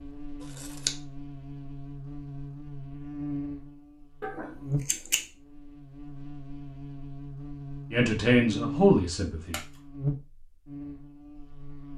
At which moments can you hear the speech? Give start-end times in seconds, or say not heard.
7.9-9.6.